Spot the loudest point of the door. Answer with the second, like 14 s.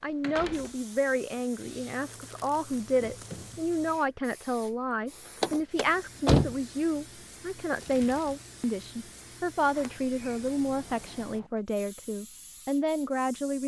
6 s.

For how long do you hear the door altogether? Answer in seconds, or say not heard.
4 s.